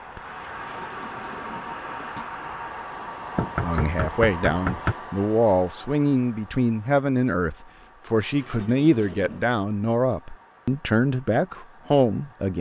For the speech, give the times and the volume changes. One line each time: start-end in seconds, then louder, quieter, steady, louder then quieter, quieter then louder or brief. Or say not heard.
3.6-12.5 steady.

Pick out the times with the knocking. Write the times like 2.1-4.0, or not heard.
3.4-5.0.